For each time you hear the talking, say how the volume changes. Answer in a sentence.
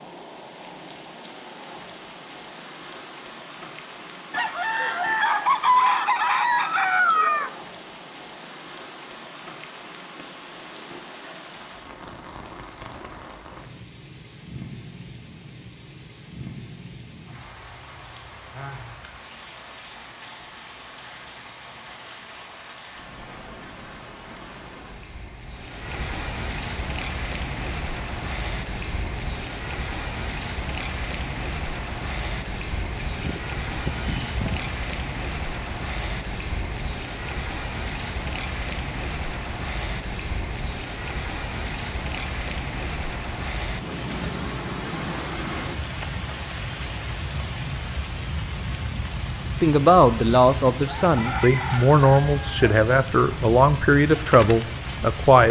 You can hear the talking from 49.6 to 55.4 s, at a steady volume.